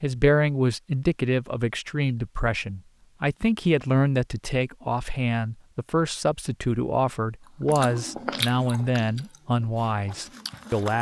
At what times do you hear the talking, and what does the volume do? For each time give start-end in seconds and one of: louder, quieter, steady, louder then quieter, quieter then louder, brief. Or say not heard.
0.0-10.9 steady.